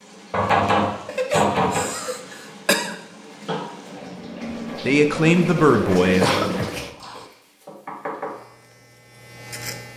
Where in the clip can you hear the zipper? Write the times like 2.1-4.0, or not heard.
not heard.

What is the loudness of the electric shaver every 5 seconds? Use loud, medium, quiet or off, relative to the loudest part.
off, loud.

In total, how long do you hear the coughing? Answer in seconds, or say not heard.
3 s.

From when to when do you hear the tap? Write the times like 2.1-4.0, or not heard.
0.0-6.9.